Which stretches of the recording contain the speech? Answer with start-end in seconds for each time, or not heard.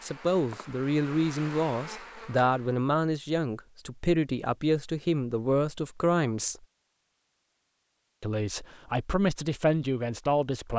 0.0-6.6, 8.2-10.7.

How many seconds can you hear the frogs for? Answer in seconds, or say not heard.
not heard.